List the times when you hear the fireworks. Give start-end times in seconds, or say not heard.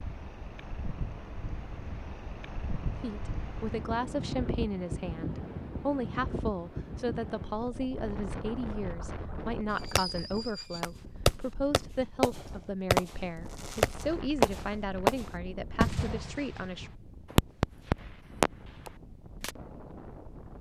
9.8-19.5.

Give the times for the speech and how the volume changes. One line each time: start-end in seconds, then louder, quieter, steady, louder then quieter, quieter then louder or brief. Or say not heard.
3.0-16.9 steady.